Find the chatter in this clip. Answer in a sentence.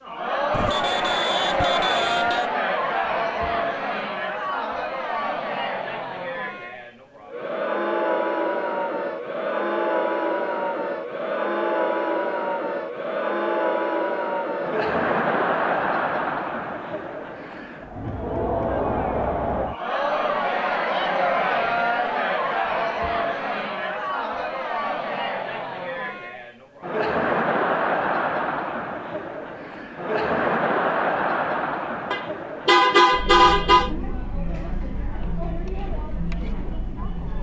The chatter can be heard from 0.0 to 37.3 s.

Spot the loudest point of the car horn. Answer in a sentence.
The loudest moment of the car horn is at 33 seconds.